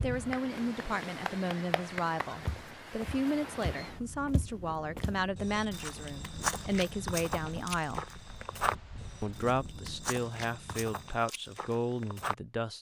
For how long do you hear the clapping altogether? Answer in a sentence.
You can hear the clapping for 2 seconds altogether.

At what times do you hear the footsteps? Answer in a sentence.
The footsteps can be heard from 2.4 to 12.3 s.